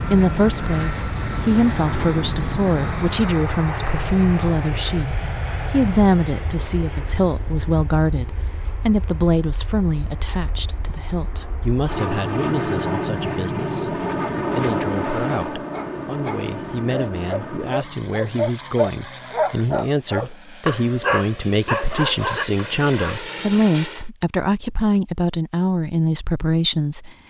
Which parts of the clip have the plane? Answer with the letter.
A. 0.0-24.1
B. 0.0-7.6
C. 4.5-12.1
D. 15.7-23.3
A.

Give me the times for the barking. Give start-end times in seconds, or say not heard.
15.7-23.3.